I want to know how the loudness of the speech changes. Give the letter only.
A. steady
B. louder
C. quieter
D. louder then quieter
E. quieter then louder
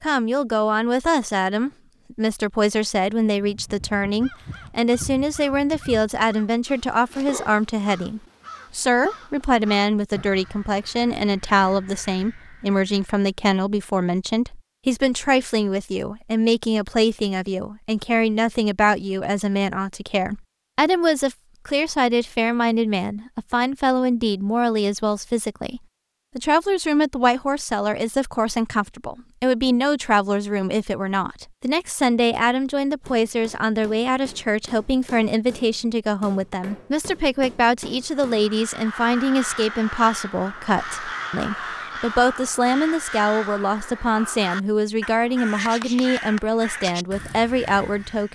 A.